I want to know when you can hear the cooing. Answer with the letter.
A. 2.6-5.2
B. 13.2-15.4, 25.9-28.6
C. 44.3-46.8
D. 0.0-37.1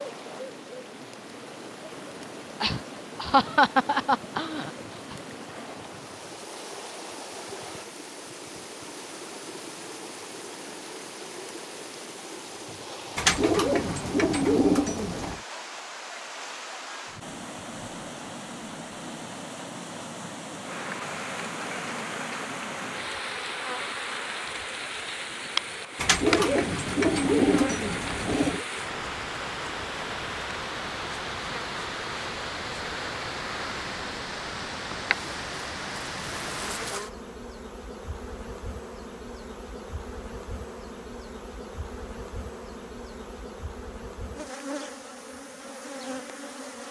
B.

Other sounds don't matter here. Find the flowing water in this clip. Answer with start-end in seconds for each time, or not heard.
0.0-37.1.